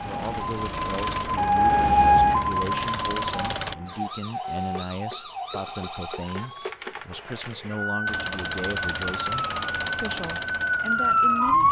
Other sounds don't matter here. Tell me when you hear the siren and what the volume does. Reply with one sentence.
You can hear the siren from 0.0 to 11.6 s, getting quieter then louder.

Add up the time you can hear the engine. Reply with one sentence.
You can hear the engine for 7 seconds altogether.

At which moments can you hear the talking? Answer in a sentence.
You can hear the talking from 0.0 to 11.6 s.